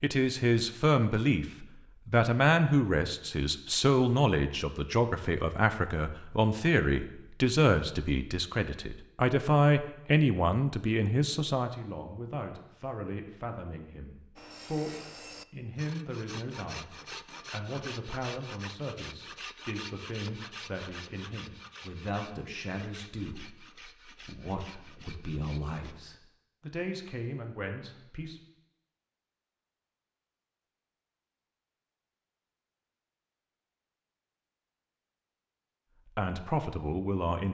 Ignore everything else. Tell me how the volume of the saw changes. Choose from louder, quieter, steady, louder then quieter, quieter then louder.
quieter.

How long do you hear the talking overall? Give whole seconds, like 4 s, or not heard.
30 s.